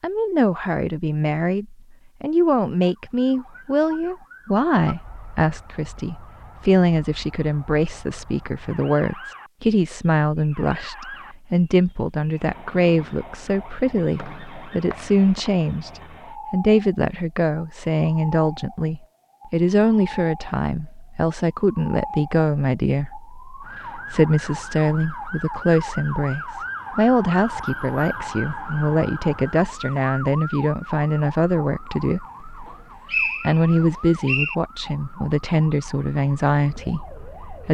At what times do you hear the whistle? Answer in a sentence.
You can hear the whistle from 14.2 to 15.7 s and from 32.6 to 34.5 s.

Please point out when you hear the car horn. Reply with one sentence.
You can't hear the car horn here.